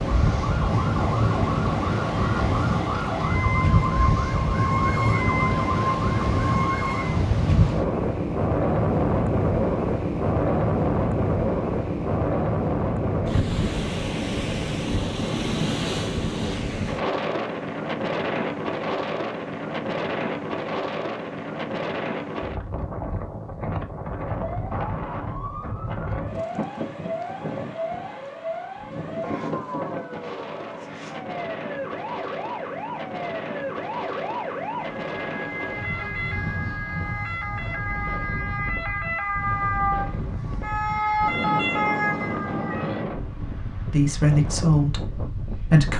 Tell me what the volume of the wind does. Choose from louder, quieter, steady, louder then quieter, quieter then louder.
quieter.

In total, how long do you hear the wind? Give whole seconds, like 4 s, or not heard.
46 s.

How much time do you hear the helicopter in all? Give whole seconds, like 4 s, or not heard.
not heard.